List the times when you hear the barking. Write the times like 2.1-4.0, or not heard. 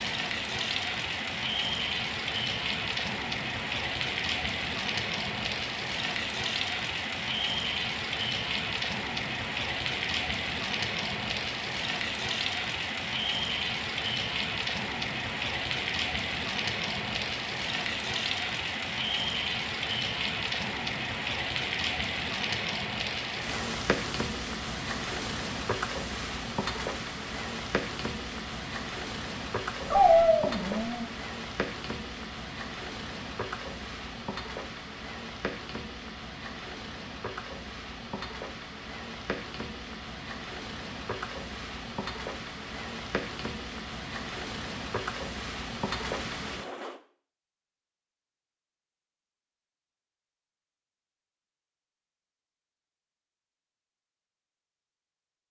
29.9-31.1.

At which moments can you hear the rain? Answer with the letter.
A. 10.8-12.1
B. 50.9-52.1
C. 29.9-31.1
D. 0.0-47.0
D.